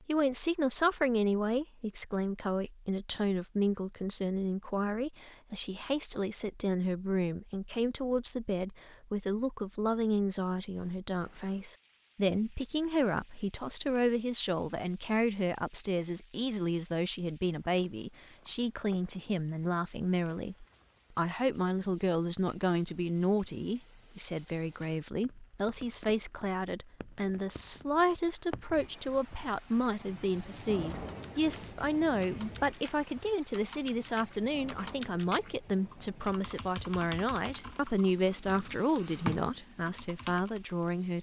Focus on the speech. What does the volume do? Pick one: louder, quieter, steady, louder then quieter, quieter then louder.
steady.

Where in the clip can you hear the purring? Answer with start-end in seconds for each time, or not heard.
not heard.